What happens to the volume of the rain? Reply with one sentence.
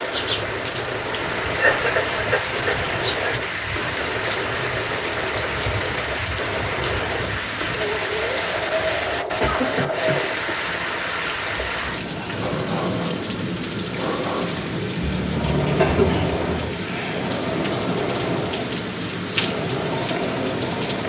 The volume of the rain stays about the same.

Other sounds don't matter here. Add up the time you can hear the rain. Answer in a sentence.
You can hear the rain for 21 seconds altogether.